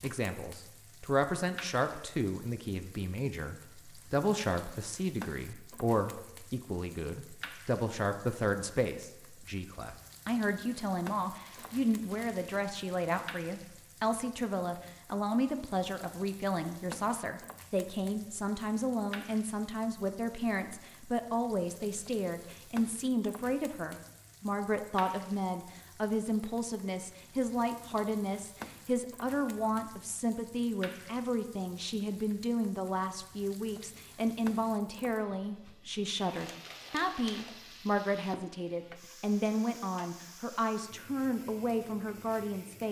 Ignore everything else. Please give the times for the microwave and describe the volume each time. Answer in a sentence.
You can't hear the microwave here.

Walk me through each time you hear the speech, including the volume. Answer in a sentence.
The speech can be heard from 0.0 to 42.8 s, at a steady volume.